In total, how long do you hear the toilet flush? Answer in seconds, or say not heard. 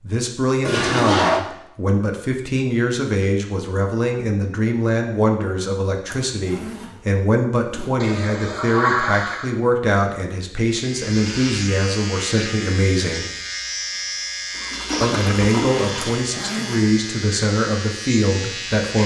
4 s.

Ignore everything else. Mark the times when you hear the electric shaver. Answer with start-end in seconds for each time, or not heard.
10.7-19.0.